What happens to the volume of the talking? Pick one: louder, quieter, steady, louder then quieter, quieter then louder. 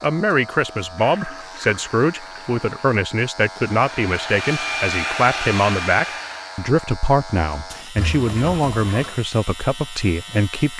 steady.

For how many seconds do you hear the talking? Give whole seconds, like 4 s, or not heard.
11 s.